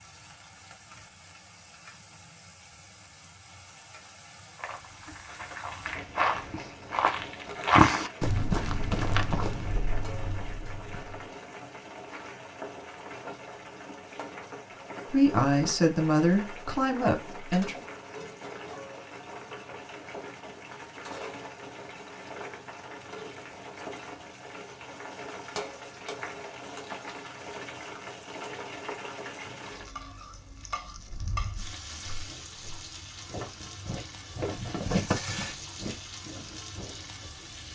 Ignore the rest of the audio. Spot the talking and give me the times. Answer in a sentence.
The talking can be heard from 15.1 to 17.8 s.